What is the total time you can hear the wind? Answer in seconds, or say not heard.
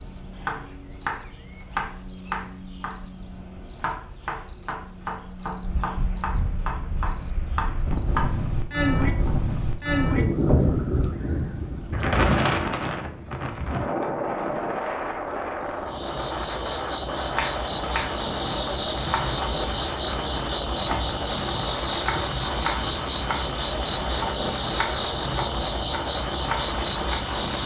22 s.